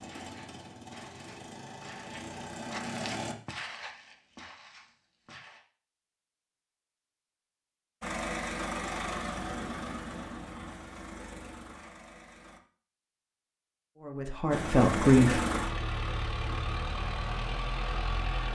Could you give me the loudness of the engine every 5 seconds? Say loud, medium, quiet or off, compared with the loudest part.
medium, loud, medium, loud.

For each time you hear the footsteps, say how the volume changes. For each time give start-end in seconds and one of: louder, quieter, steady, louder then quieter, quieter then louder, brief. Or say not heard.
0.0-5.6 louder then quieter.